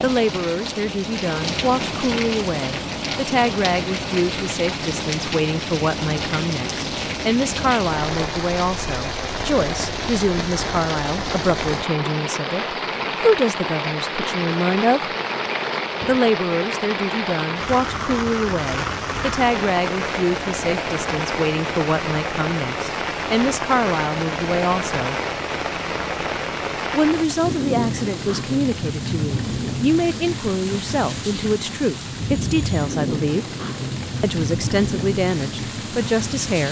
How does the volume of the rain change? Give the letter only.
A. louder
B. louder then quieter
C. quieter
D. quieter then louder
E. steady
E.